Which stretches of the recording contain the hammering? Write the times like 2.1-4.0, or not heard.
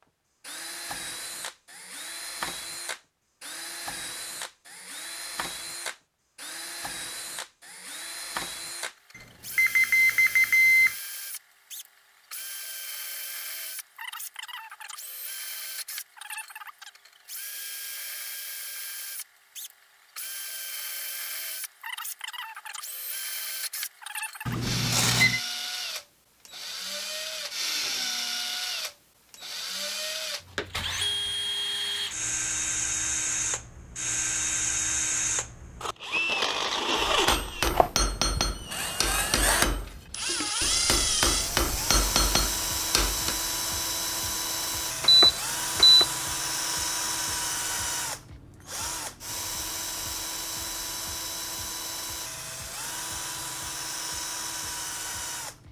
37.0-43.4.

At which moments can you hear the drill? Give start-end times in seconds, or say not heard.
0.4-55.6.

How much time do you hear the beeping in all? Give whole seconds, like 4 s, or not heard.
4 s.